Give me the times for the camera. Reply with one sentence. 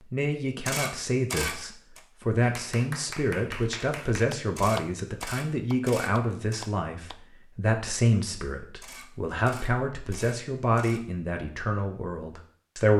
The camera can be heard from 0.7 to 2.0 s, from 4.5 to 6.7 s and from 8.8 to 11.0 s.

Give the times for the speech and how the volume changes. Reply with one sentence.
You can hear the speech from 0.1 to 12.9 s, at a steady volume.